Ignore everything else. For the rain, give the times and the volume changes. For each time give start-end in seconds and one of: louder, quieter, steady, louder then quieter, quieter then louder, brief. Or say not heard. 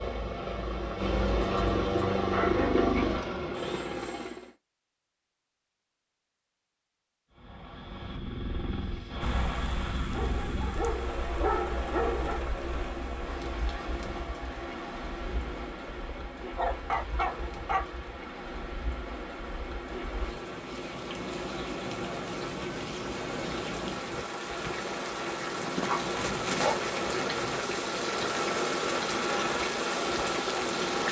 9.2-31.0 louder.